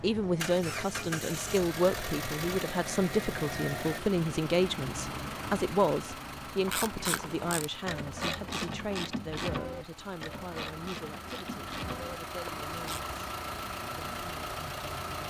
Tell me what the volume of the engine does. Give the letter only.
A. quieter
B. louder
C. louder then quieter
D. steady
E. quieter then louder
E.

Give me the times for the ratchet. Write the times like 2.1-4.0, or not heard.
6.7-13.0.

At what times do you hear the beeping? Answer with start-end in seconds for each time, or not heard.
not heard.